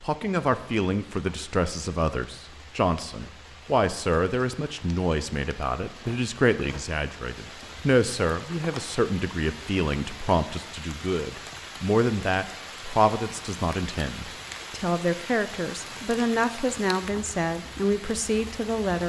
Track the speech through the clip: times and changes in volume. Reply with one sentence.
You can hear the speech from 0.0 to 19.0 s, at a steady volume.